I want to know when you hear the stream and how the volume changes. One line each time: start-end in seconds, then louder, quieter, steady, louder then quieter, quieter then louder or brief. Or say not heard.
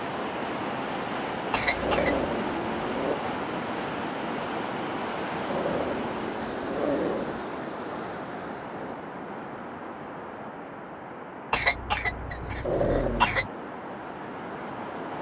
0.0-15.1 quieter.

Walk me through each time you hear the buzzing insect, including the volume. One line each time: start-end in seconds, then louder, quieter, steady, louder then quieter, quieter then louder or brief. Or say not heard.
not heard.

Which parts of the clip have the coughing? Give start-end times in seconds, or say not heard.
1.5-2.3, 11.5-13.5.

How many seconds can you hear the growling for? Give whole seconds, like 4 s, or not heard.
4 s.